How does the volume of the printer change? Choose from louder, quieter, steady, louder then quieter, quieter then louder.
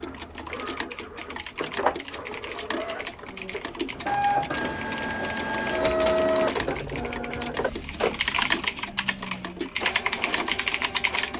louder then quieter.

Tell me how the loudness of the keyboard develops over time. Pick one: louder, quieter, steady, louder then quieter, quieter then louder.
louder.